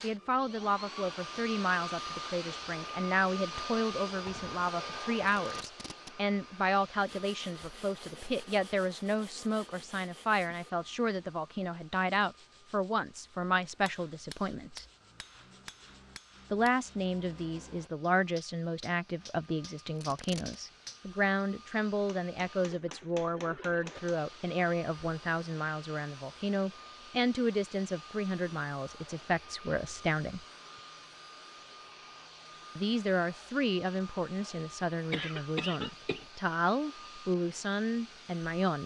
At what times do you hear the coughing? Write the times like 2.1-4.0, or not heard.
35.1-36.2.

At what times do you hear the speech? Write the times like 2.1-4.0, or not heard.
0.0-14.8, 16.5-30.4, 32.8-38.8.